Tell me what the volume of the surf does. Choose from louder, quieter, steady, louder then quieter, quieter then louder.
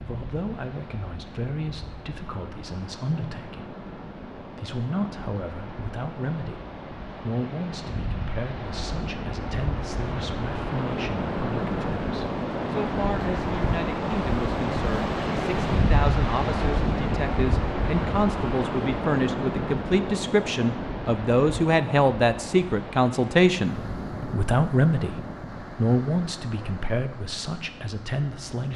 louder then quieter.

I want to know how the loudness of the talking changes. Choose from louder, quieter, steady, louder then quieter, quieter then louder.
louder.